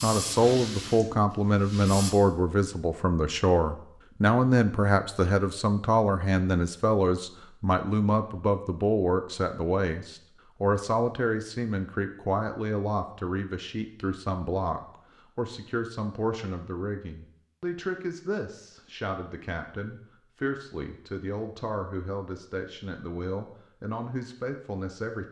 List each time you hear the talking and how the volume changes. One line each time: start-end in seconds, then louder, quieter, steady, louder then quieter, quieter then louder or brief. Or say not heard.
0.0-25.2 quieter.